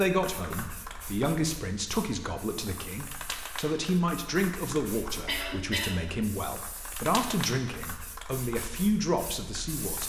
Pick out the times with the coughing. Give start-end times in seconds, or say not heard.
5.2-6.0.